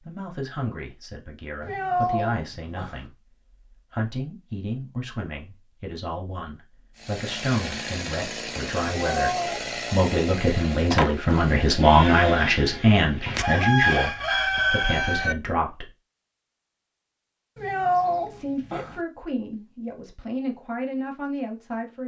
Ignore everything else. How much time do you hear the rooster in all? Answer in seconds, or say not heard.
2 s.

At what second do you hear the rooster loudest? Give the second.
14 s.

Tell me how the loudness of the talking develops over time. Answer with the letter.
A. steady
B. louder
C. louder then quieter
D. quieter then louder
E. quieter
C.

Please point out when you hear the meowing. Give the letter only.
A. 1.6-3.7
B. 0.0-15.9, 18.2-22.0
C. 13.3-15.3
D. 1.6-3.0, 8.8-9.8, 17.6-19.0
D.